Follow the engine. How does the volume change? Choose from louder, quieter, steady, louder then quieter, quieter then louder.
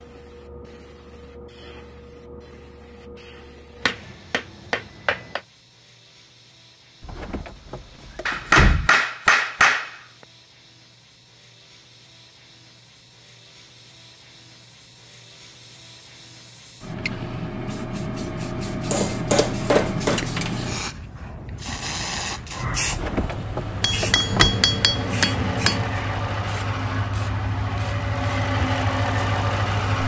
louder.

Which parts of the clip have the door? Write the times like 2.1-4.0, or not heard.
7.0-8.9, 22.9-24.6.